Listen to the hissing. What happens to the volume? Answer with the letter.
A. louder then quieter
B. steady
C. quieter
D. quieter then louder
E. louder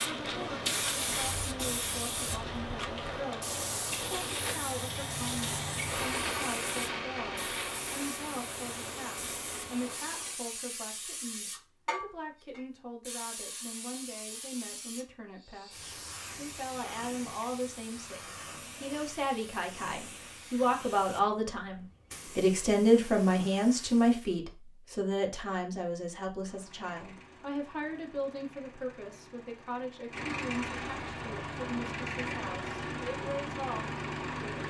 C.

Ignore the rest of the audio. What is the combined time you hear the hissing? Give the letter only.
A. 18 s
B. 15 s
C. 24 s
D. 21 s
C.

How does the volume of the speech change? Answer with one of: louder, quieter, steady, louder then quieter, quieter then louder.
louder then quieter.